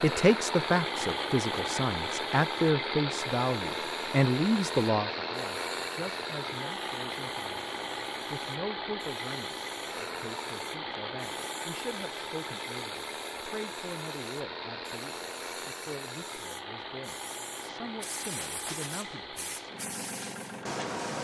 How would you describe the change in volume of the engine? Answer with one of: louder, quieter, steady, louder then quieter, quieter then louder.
quieter.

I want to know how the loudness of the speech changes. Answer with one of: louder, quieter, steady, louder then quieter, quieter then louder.
quieter.